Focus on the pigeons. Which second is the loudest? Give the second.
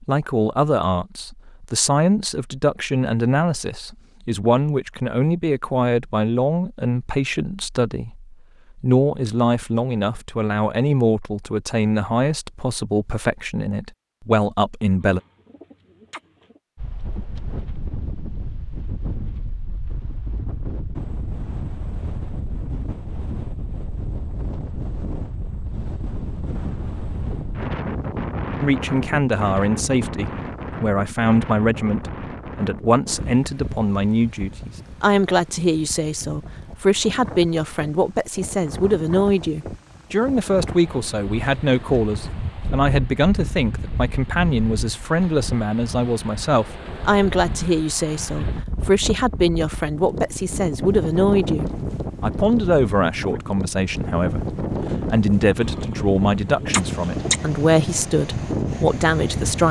57 s.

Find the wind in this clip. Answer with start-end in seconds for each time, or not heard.
16.8-59.6.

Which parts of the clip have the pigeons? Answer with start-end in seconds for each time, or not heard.
15.0-16.6, 55.6-57.5.